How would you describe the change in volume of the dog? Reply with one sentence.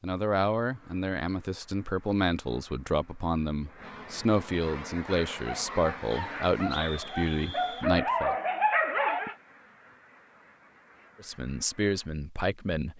The loudness of the dog goes up.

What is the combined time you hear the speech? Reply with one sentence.
You can hear the speech for 10 seconds altogether.